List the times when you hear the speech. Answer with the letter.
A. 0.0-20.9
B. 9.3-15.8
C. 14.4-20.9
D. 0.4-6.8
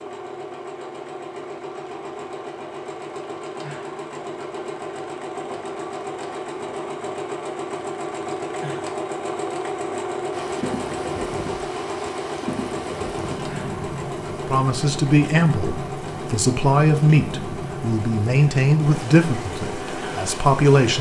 C.